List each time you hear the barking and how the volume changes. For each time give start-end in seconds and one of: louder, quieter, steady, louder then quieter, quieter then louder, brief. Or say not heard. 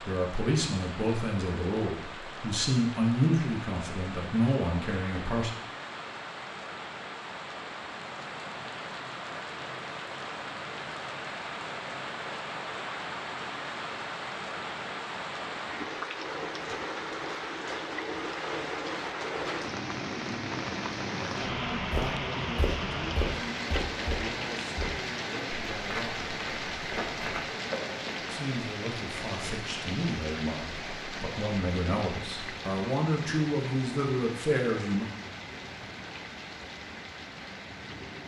not heard.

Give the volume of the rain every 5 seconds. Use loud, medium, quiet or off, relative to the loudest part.
medium, medium, loud, loud, loud, loud, medium, medium.